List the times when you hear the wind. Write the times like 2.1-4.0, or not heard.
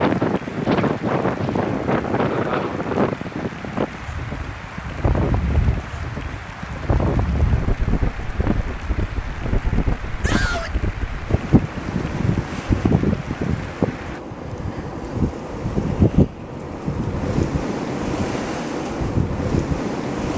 0.0-20.3.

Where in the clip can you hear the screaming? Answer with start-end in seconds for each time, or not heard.
10.2-10.8.